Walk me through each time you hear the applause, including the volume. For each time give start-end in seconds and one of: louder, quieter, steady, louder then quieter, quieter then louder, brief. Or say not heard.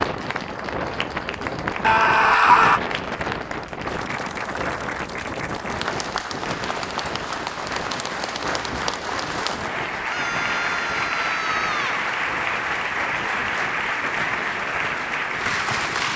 0.0-16.1 louder.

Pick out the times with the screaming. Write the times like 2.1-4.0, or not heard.
1.8-2.8, 10.1-12.1.